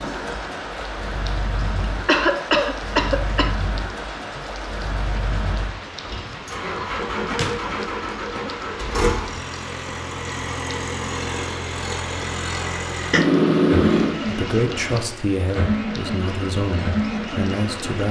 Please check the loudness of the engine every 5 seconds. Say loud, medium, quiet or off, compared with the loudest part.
medium, loud, loud, loud.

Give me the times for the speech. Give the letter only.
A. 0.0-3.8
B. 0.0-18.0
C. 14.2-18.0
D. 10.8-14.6
C.